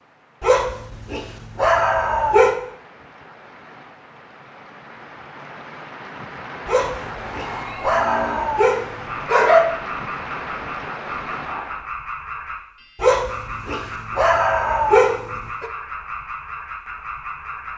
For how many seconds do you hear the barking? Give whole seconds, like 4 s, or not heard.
8 s.